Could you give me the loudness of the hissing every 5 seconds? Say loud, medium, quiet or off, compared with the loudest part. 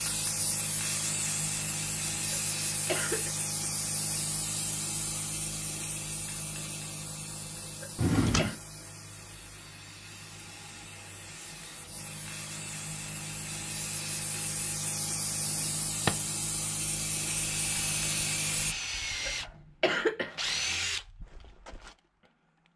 loud, medium, medium, loud, off.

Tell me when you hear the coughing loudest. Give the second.
20 s.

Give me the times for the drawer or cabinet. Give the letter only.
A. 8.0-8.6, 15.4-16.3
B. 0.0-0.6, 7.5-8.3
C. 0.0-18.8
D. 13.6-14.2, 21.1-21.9
A.